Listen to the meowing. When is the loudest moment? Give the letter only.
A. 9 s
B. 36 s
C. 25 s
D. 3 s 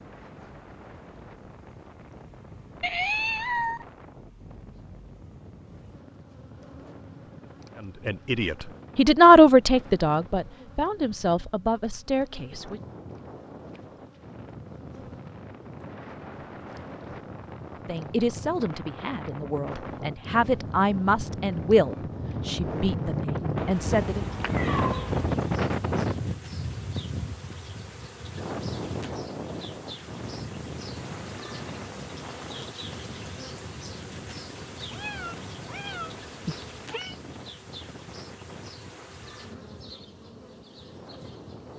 D.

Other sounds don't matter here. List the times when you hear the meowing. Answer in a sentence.
You can hear the meowing from 2.8 to 3.9 s, from 23.6 to 25.4 s and from 34.9 to 37.1 s.